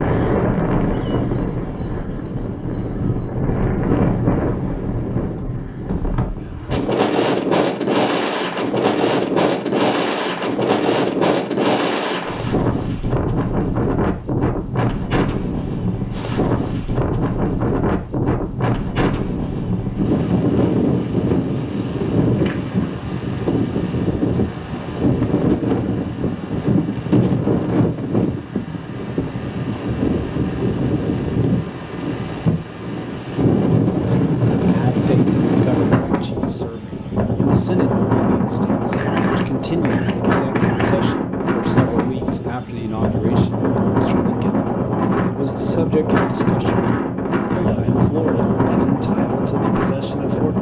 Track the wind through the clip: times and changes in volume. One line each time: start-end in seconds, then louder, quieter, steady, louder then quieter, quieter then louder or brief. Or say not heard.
0.0-50.5 steady.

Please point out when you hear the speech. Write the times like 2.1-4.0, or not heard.
34.5-46.9, 47.5-50.5.